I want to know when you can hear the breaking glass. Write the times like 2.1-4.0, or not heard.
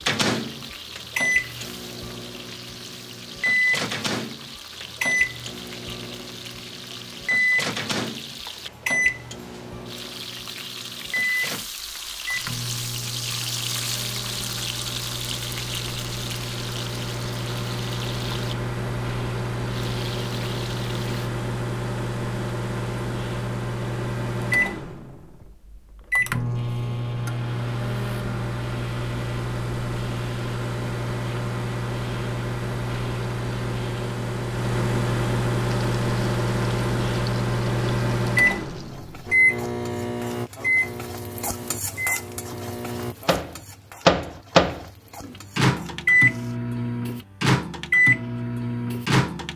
not heard.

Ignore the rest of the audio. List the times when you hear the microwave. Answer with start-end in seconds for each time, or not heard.
0.0-49.5.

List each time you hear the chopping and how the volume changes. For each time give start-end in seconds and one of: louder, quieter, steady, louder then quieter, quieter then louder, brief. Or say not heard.
not heard.